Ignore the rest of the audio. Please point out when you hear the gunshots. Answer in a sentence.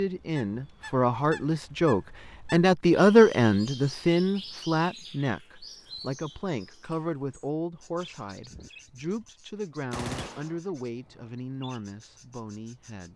The gunshots can be heard from 9.9 to 10.6 s.